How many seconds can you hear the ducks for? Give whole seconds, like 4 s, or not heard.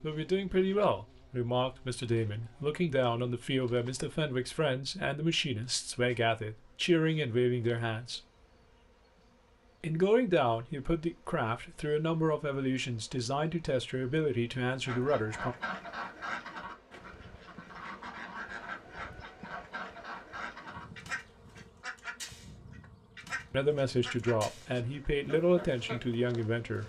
11 s.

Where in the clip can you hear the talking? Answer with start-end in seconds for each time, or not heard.
0.0-8.2, 9.8-15.6, 23.5-26.8.